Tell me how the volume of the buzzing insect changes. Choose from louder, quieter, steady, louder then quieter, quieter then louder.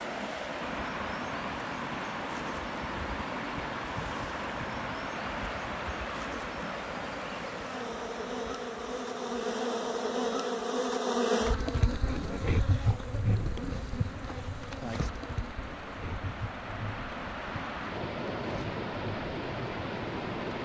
louder then quieter.